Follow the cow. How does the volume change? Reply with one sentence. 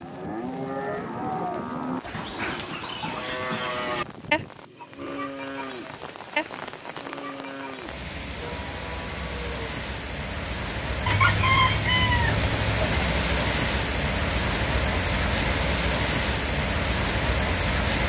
The loudness of the cow goes down.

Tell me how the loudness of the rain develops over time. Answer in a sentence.
The loudness of the rain goes up.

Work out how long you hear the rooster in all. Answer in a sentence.
You can hear the rooster for 2 seconds altogether.